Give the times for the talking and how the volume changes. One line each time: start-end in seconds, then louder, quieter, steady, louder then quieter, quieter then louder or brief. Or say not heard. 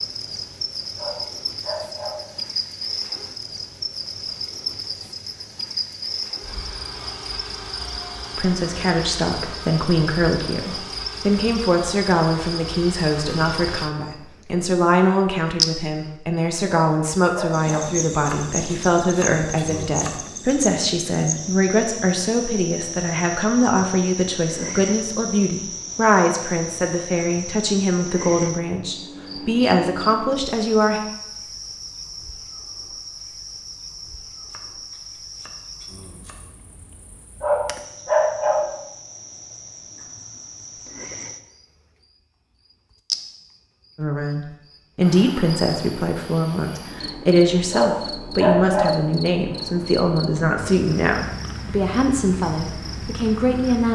8.3-31.0 steady
44.0-53.9 steady.